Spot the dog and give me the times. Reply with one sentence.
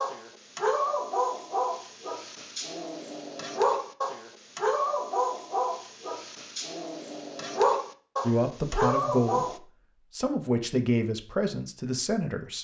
You can hear the dog from 0.0 to 9.6 s.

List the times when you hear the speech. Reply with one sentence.
The speech can be heard from 8.2 to 12.5 s.